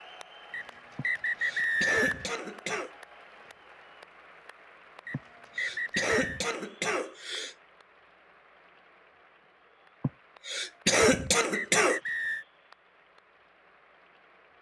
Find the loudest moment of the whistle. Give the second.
2 s.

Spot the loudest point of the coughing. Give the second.
11 s.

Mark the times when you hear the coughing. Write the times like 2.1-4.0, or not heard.
0.9-2.9, 5.1-7.5, 10.0-12.0.